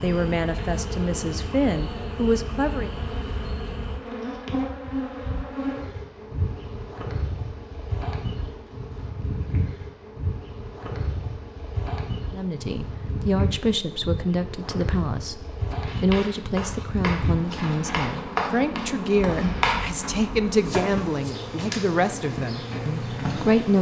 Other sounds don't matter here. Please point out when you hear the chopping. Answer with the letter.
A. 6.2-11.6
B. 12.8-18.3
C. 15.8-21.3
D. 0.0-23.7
C.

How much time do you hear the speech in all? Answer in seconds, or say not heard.
14 s.